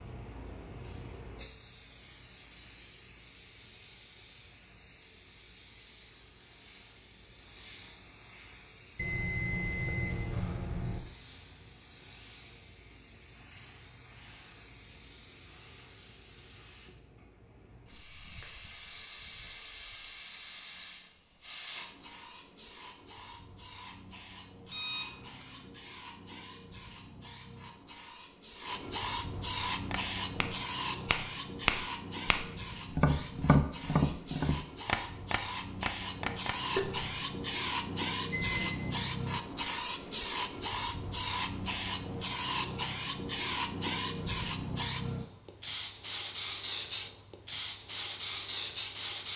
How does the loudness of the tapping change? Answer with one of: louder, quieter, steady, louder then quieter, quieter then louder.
louder then quieter.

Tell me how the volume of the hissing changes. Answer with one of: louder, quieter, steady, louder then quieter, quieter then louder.
louder.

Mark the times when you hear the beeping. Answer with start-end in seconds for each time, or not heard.
8.9-11.0, 24.7-25.8, 38.2-39.1.